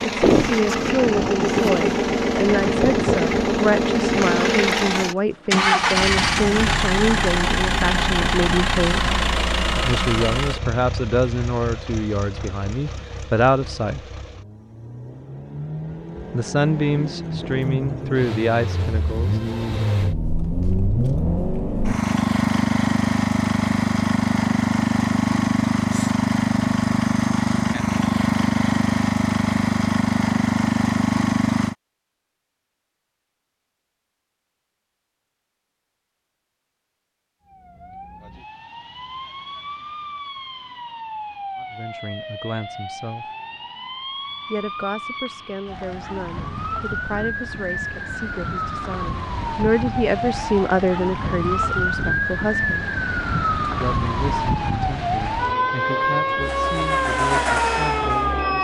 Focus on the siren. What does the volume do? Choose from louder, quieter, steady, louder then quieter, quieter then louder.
louder.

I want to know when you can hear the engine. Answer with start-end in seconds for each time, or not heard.
0.0-31.8, 56.4-58.6.